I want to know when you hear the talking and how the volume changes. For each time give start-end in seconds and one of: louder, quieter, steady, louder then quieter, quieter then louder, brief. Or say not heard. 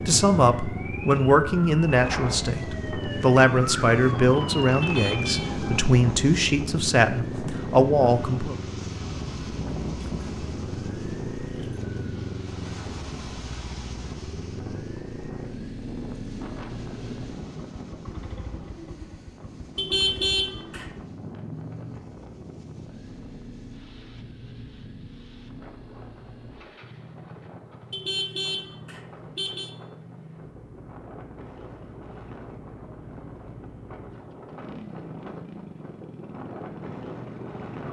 0.1-8.6 steady.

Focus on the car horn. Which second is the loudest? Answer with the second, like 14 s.
20 s.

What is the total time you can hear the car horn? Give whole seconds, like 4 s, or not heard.
4 s.